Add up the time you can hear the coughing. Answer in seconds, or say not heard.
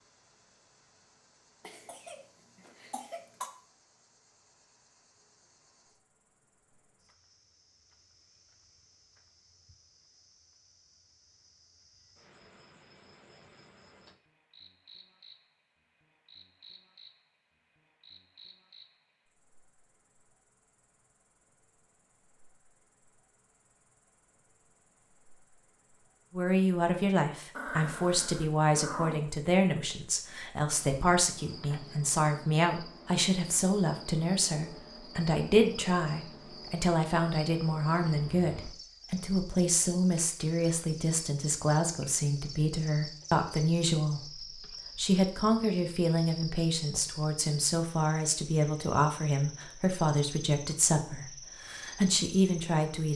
2 s.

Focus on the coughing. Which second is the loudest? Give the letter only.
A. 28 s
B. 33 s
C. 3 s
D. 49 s
C.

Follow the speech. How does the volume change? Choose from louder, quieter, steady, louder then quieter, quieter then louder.
steady.